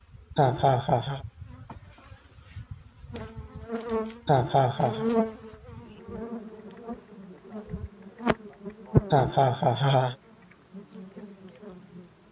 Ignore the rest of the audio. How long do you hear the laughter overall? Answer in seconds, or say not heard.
3 s.